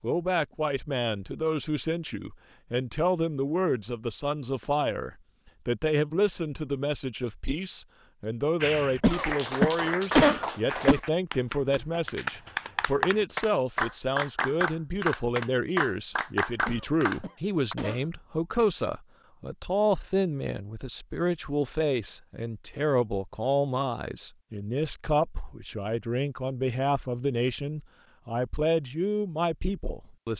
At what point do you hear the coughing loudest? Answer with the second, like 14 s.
10 s.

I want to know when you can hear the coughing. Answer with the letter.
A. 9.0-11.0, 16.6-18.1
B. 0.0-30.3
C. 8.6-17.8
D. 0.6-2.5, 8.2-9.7
A.